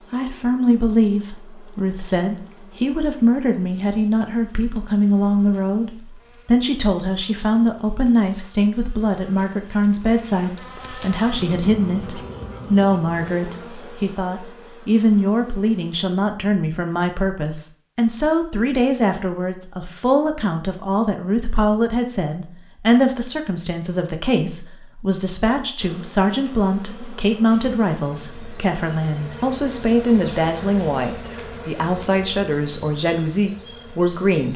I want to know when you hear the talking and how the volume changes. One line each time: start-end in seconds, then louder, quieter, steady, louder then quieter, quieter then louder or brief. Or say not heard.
0.1-34.5 steady.